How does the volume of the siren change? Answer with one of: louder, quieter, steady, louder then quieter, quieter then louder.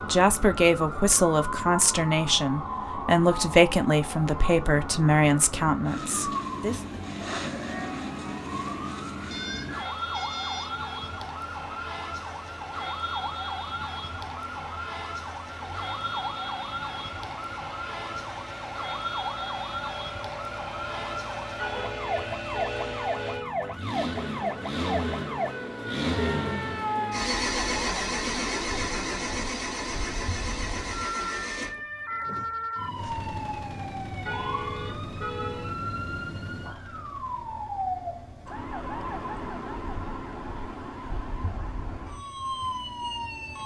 steady.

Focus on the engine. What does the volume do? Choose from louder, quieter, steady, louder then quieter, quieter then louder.
louder then quieter.